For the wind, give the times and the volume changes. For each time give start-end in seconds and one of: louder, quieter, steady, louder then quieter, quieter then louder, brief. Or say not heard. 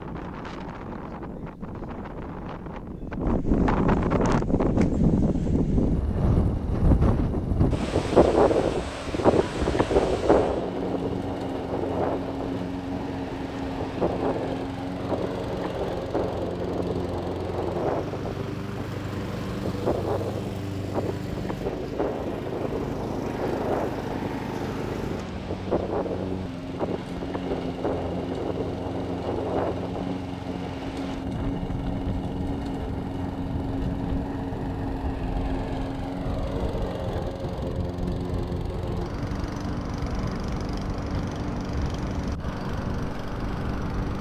0.0-44.1 quieter.